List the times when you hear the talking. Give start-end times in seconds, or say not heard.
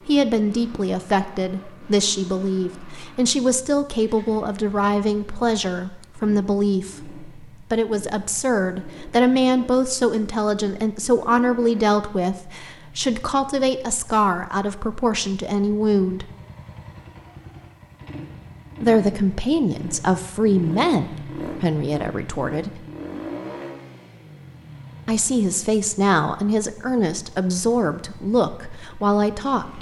0.1-16.3, 18.8-22.9, 25.1-29.7.